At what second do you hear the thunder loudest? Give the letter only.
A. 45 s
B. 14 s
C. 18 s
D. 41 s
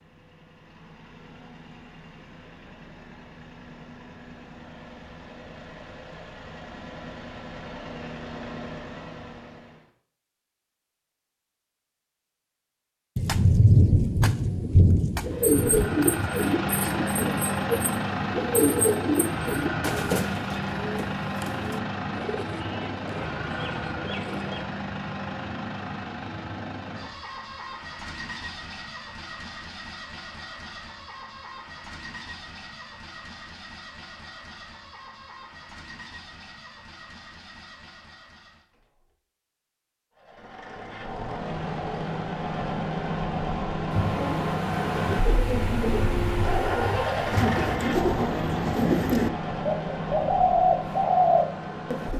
B.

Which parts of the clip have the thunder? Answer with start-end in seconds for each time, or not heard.
13.2-16.3, 43.9-47.8.